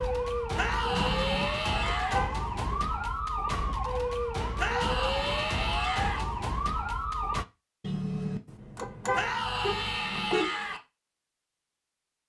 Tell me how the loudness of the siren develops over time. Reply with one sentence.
The volume of the siren stays about the same.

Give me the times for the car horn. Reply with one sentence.
You can hear the car horn from 0.9 to 2.5 s and from 7.8 to 10.6 s.